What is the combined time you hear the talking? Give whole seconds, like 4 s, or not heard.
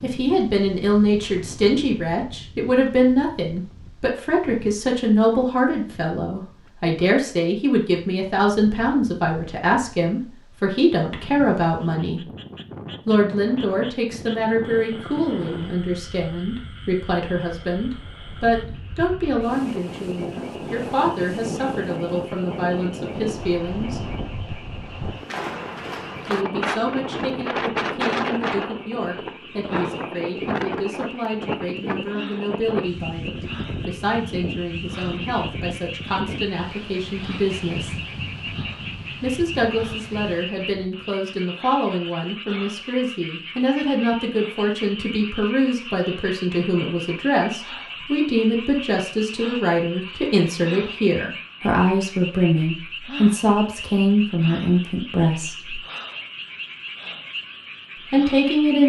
52 s.